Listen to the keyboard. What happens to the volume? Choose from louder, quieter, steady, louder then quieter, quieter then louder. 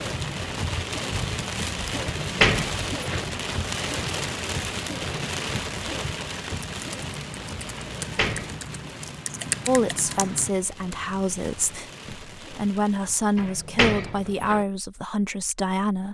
louder.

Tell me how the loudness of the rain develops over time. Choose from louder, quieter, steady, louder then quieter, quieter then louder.
quieter.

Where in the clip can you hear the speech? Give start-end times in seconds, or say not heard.
9.7-16.1.